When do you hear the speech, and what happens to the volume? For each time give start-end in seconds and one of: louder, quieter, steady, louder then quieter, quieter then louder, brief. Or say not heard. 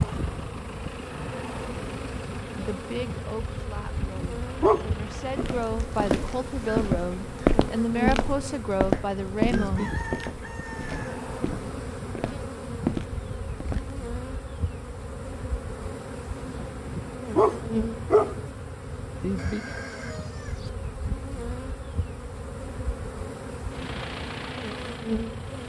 2.5-9.9 louder.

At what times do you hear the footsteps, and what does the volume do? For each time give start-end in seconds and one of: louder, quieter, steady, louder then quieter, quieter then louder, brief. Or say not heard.
5.3-13.9 quieter then louder.